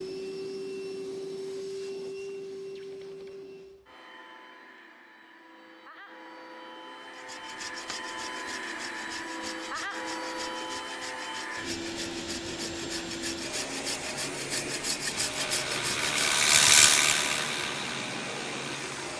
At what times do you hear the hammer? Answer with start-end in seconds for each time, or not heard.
not heard.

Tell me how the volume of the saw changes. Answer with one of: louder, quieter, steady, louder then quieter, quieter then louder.
louder.